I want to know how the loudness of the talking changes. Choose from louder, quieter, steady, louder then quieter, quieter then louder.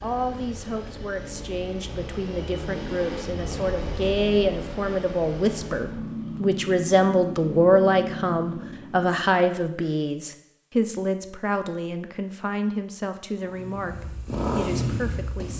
louder then quieter.